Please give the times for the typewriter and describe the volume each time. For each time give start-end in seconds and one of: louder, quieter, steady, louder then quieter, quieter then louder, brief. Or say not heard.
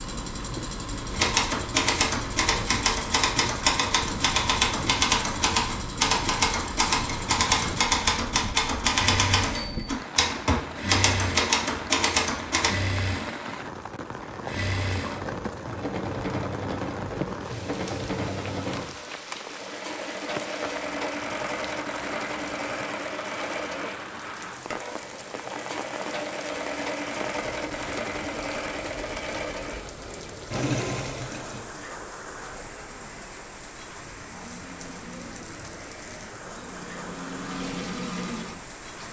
1.1-12.8 steady.